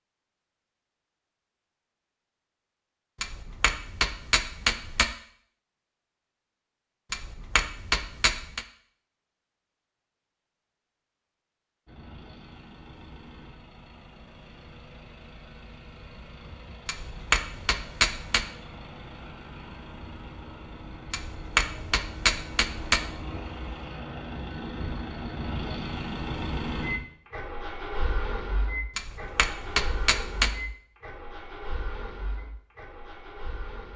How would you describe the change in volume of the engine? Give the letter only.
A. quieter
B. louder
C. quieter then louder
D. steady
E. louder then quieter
E.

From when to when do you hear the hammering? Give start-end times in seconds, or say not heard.
3.2-5.0, 7.1-8.7, 16.9-18.4, 21.1-23.0, 28.9-30.6.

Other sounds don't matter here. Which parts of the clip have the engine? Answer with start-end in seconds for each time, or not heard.
11.8-33.9.